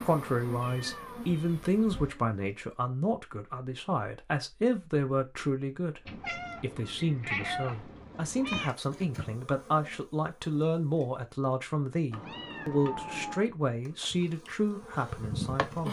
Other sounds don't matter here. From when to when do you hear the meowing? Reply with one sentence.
The meowing can be heard from 0.6 to 2.1 s, from 6.0 to 8.8 s and from 12.1 to 13.4 s.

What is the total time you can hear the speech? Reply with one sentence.
You can hear the speech for 16 seconds altogether.